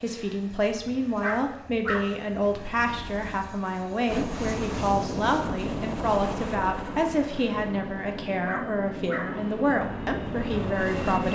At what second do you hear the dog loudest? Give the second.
2 s.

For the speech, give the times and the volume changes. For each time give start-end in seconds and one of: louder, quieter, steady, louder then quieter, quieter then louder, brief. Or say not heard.
0.0-11.2 steady.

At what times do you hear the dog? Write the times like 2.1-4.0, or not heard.
1.2-3.5, 8.4-9.3.